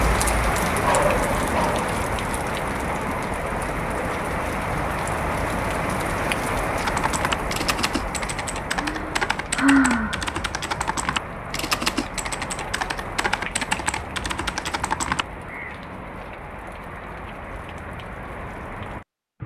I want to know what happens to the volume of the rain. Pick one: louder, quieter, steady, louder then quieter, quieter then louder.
quieter.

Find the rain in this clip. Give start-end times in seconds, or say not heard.
0.0-19.4.